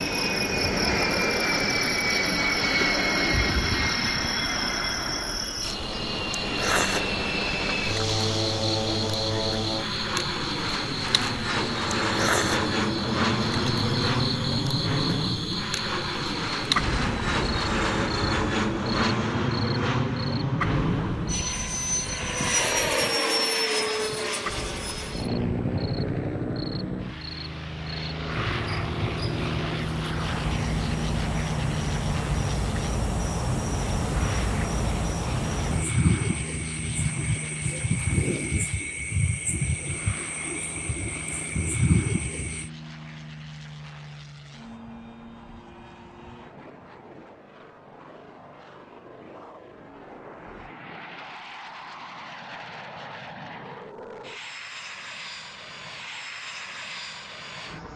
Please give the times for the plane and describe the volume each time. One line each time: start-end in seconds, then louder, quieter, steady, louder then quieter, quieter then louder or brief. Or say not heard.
0.0-57.9 quieter.